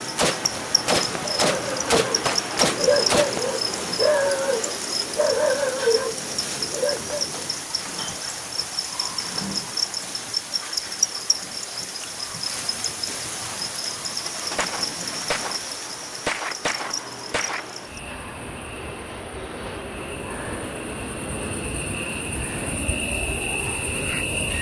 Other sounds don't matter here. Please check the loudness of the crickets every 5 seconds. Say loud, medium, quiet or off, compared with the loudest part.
loud, loud, loud, medium, loud.